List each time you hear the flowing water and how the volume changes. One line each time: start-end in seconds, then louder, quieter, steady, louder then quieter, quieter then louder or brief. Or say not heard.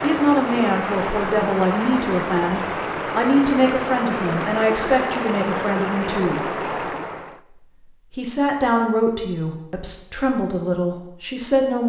0.0-7.4 steady.